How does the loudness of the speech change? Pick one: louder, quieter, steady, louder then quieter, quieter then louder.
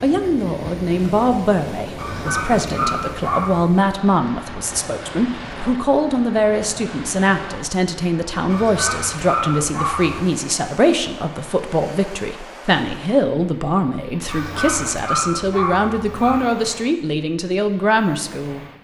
steady.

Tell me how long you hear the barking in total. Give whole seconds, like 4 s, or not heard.
6 s.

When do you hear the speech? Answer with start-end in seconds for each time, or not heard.
0.0-18.6.